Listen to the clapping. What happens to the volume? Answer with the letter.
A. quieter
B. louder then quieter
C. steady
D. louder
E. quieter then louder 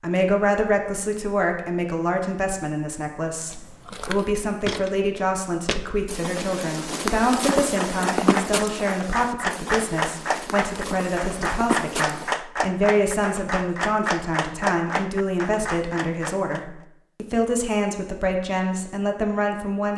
C.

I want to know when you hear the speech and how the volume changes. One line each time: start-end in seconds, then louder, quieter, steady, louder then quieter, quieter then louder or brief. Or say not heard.
0.0-19.9 steady.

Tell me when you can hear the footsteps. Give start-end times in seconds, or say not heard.
3.5-12.3.